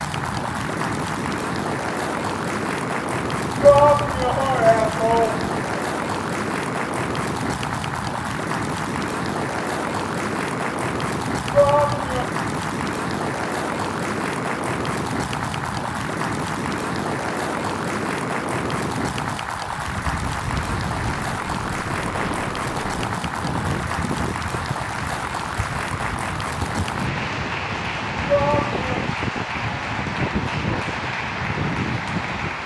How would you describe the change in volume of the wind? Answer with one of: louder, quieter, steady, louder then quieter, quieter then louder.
steady.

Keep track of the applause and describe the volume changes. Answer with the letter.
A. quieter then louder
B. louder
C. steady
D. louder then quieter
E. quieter
C.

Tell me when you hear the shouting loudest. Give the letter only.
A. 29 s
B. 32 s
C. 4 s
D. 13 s
C.